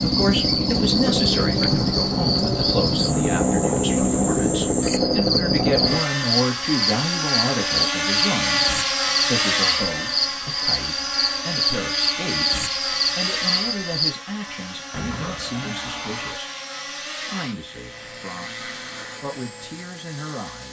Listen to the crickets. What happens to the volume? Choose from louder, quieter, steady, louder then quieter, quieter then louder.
steady.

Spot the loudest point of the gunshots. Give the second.
15 s.